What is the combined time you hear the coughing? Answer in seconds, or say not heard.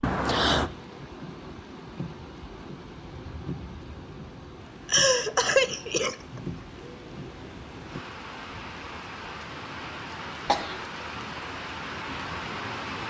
3 s.